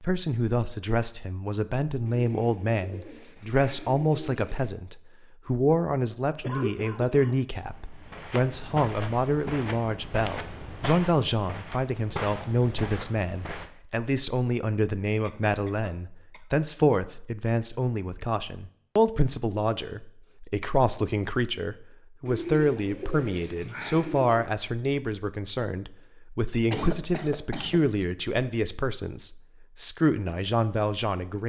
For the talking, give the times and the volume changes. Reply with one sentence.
The talking can be heard from 0.0 to 31.4 s, at a steady volume.